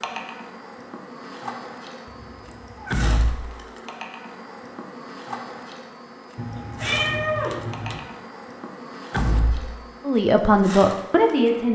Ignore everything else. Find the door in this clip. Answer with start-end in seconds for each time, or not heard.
2.9-3.5, 9.1-9.8.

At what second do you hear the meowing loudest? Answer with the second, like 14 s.
7 s.